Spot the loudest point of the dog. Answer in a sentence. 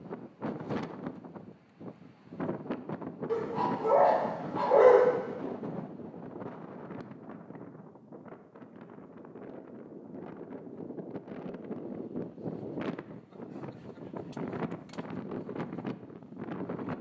The loudest moment of the dog is at 5 seconds.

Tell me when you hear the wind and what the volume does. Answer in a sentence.
The wind can be heard from 0.0 to 16.9 s, getting quieter then louder.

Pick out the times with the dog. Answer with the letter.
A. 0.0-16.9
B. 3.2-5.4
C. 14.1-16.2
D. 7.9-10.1
B.